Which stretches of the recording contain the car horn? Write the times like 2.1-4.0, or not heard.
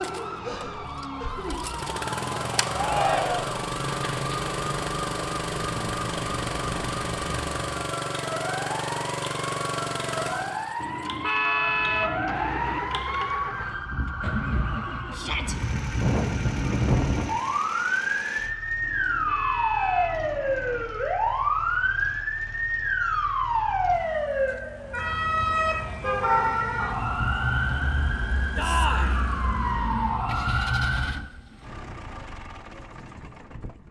10.8-12.8, 18.8-20.9.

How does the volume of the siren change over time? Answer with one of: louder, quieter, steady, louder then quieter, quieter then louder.
louder.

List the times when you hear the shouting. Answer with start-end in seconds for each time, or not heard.
2.7-3.6, 15.2-15.6, 28.6-29.1.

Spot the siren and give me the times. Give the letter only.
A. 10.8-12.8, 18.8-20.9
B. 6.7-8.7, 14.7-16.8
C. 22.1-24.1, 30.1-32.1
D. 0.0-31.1
D.